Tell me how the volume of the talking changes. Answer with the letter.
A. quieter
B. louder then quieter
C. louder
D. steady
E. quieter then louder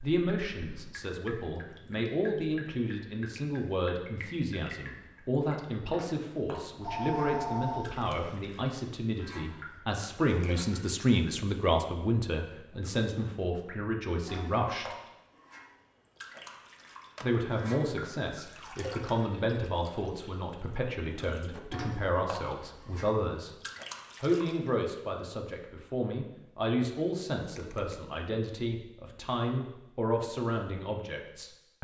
D.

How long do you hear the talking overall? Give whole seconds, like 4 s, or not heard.
29 s.